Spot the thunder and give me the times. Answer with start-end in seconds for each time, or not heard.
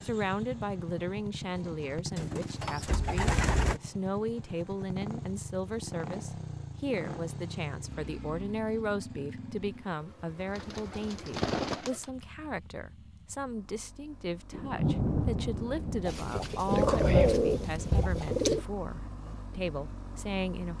14.5-18.3.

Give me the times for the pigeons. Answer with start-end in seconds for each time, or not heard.
2.1-3.8, 10.6-12.1, 16.1-18.6.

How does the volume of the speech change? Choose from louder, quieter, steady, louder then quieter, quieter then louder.
steady.